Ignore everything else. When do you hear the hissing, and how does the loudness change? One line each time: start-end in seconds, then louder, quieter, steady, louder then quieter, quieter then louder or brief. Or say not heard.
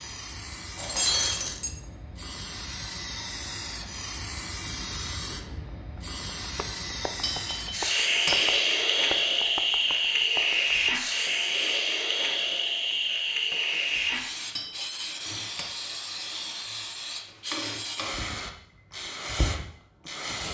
0.0-20.4 louder then quieter.